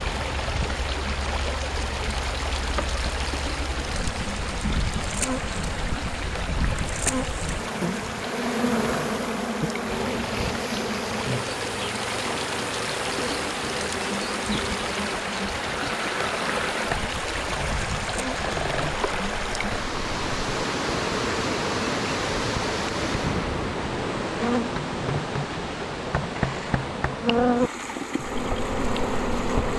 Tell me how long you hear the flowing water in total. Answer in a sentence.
The flowing water can be heard for 30 seconds in total.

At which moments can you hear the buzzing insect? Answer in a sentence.
The buzzing insect can be heard from 0.2 to 29.7 s.